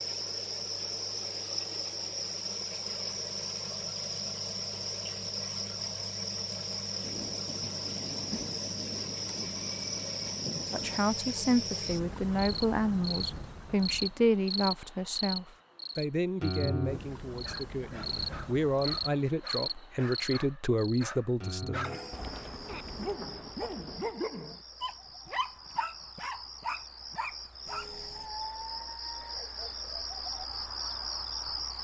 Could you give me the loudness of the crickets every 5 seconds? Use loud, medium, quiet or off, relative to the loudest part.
loud, loud, loud, loud, medium, medium, loud.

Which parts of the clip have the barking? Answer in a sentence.
The barking can be heard from 17.4 to 29.4 s.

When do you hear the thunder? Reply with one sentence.
You can hear the thunder from 7.0 to 11.0 s and from 22.1 to 24.1 s.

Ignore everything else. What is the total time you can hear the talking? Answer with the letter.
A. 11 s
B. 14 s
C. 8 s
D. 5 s
A.